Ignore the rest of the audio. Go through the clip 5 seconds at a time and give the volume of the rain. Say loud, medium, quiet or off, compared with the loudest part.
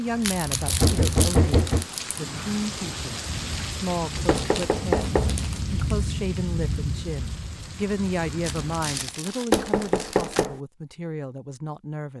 loud, loud, off.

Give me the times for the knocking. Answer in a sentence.
The knocking can be heard from 0.7 to 1.9 s, from 4.2 to 5.3 s and from 9.5 to 10.6 s.